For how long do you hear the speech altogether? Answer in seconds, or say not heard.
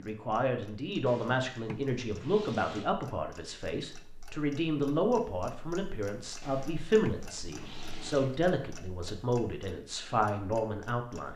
11 s.